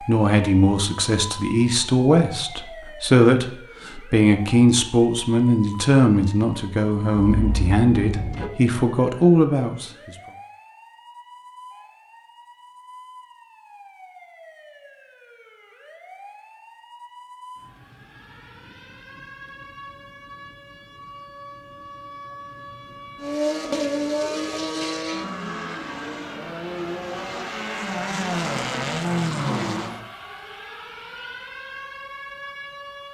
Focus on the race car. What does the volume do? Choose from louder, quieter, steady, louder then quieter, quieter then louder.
quieter then louder.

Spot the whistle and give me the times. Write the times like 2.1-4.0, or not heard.
not heard.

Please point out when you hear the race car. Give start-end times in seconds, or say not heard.
23.1-30.1.